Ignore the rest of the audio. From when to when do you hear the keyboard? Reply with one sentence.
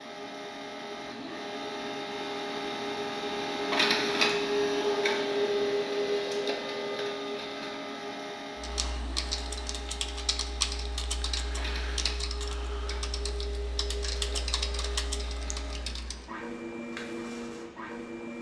The keyboard can be heard from 8.6 to 16.4 s.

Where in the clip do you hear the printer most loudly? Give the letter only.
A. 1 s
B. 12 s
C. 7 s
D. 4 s
D.